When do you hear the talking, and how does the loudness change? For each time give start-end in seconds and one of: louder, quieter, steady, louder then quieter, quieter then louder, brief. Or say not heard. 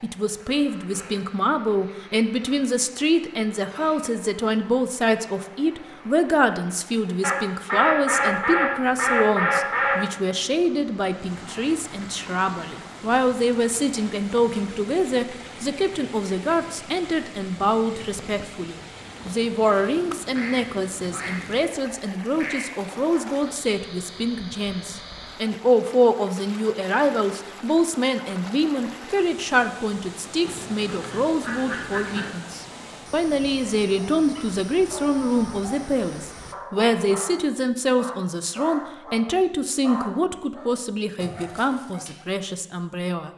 0.0-43.3 steady.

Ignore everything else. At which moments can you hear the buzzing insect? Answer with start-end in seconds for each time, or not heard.
not heard.